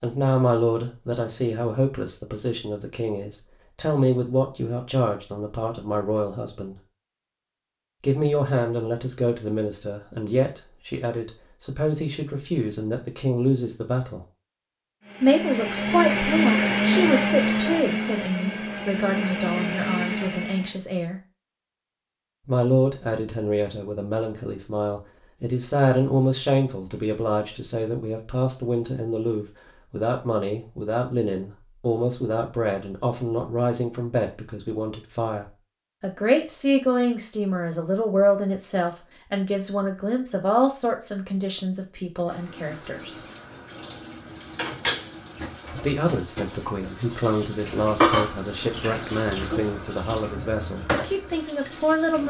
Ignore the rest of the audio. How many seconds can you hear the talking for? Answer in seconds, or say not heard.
46 s.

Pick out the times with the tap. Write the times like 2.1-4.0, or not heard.
42.2-52.2.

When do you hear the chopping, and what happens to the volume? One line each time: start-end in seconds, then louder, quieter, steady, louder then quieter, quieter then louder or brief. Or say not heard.
not heard.